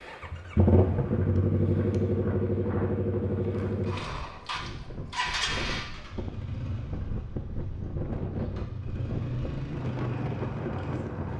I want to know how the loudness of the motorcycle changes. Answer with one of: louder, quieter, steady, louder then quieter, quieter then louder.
quieter then louder.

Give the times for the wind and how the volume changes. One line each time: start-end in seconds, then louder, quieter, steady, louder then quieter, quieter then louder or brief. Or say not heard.
0.0-11.3 louder.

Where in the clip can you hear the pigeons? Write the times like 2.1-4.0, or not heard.
not heard.